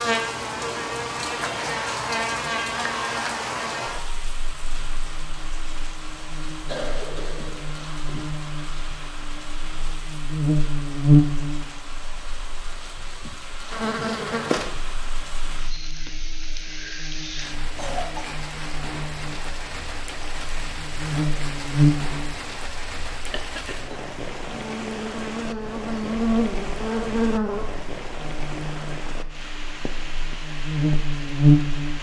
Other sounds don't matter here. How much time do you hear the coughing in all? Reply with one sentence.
The coughing can be heard for 3 seconds in total.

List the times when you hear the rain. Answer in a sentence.
The rain can be heard from 0.0 to 31.9 s.